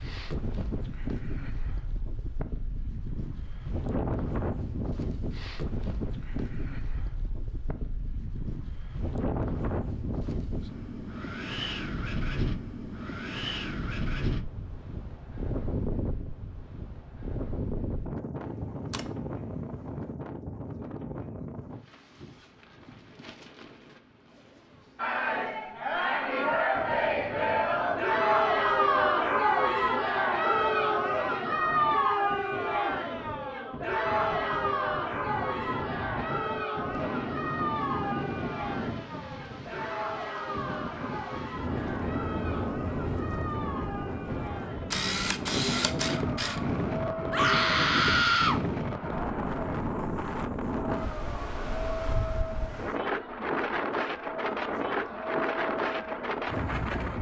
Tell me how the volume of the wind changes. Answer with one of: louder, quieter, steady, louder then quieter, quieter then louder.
quieter then louder.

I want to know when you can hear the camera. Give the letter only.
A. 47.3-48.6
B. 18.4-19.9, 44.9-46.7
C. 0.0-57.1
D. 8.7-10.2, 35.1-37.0
B.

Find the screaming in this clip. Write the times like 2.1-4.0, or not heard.
47.3-48.6.